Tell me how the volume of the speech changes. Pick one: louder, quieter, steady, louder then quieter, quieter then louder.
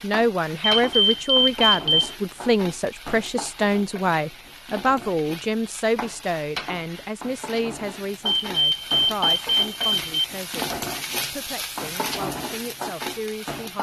quieter.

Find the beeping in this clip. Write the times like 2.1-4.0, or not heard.
0.6-2.1, 8.2-10.2.